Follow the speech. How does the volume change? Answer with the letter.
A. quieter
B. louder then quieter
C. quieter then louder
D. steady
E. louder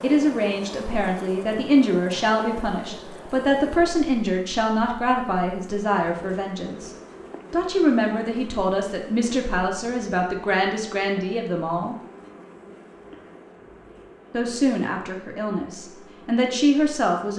D.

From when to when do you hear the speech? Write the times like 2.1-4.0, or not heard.
0.0-6.9, 7.5-11.9, 14.3-17.3.